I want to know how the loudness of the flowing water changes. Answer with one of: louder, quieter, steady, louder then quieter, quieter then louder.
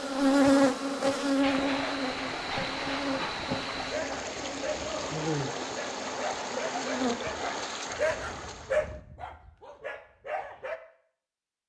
steady.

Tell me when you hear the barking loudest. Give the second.
9 s.